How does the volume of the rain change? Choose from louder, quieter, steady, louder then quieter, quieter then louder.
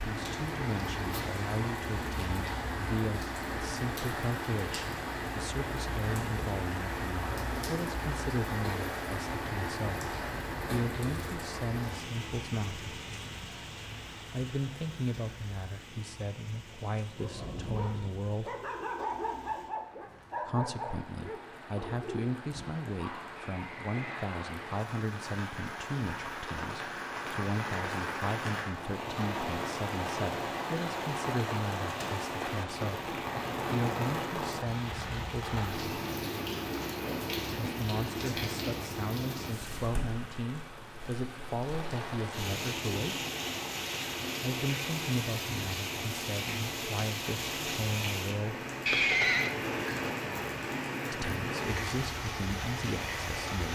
quieter then louder.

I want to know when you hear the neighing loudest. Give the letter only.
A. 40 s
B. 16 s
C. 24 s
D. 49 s
D.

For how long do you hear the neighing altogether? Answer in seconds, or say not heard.
2 s.